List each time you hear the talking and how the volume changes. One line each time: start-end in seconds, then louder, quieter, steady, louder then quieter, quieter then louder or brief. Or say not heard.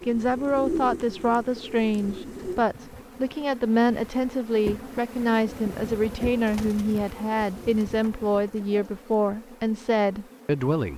0.1-10.9 steady.